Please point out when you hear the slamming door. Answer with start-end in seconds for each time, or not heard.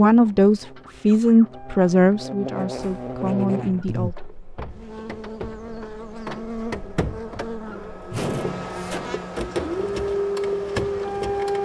2.7-3.2, 8.1-9.2.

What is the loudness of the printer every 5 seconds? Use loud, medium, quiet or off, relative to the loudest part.
quiet, medium, loud.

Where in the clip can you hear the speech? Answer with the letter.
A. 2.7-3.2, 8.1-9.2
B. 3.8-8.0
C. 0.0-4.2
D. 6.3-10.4
C.